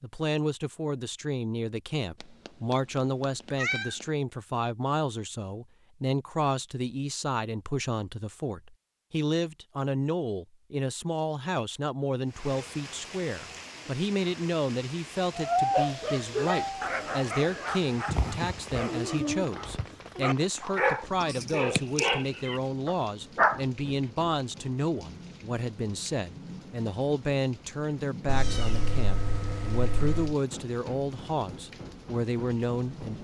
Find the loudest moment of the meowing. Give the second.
16 s.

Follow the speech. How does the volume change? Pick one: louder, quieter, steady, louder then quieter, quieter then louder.
steady.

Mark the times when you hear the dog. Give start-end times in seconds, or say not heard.
15.7-23.6.